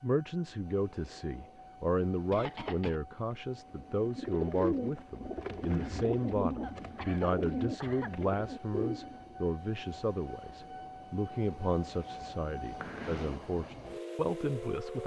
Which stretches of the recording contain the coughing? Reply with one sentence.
The coughing can be heard from 2.3 to 3.0 s, from 6.6 to 8.2 s and from 12.8 to 13.4 s.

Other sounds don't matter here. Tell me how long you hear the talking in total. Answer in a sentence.
The talking can be heard for 15 seconds in total.